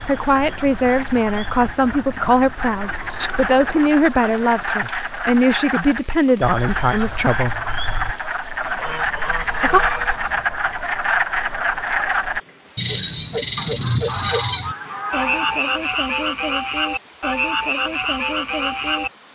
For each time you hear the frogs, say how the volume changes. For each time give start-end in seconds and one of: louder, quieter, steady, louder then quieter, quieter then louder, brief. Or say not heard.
0.0-19.1 louder.